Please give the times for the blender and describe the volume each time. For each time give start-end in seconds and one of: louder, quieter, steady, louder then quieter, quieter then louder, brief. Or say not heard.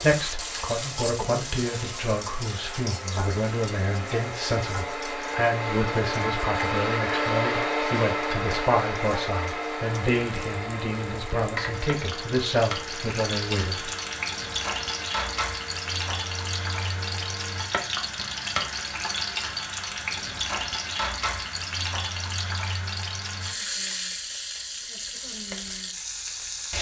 0.1-17.7 louder then quieter.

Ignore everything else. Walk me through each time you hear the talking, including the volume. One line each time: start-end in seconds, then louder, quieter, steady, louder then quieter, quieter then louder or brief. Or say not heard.
0.0-13.9 steady.